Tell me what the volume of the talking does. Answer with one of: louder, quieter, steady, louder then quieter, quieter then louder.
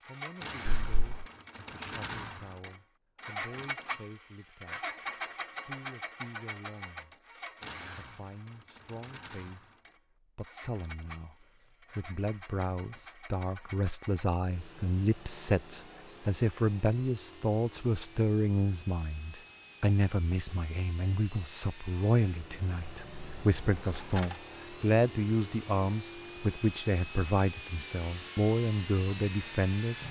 louder.